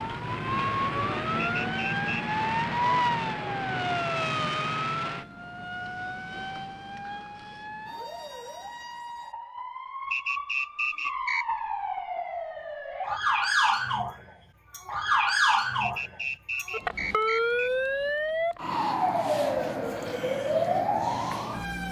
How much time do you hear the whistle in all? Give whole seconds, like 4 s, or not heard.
4 s.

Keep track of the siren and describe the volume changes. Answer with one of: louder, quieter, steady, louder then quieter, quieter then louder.
quieter then louder.